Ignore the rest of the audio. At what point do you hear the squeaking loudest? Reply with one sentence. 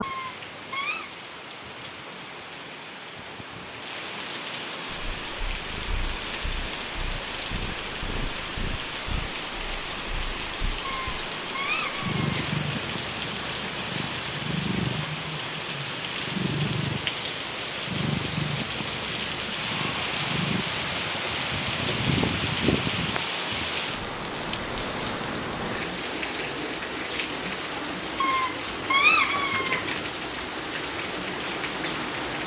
The loudest moment of the squeaking is at 29 seconds.